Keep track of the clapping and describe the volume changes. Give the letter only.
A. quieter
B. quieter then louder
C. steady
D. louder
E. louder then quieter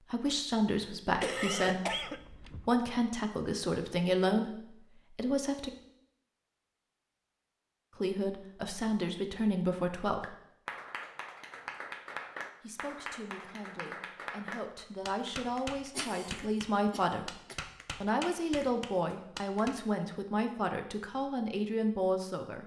C.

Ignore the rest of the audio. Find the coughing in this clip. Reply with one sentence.
You can hear the coughing from 1.2 to 2.7 s and from 15.9 to 17.6 s.